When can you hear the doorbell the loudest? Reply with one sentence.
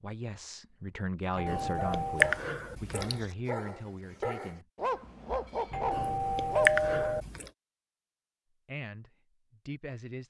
The loudest moment of the doorbell is at 7 seconds.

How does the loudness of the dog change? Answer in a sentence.
The loudness of the dog goes up.